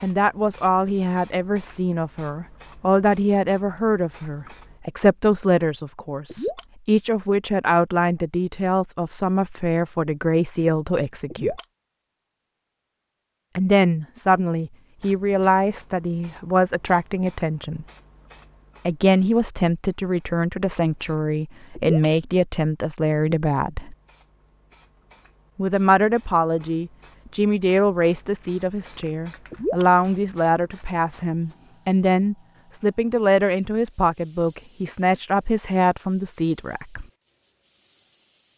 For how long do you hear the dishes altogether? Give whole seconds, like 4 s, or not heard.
not heard.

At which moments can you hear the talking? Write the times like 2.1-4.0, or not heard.
0.0-11.6, 13.6-17.9, 18.9-23.9, 25.6-37.0.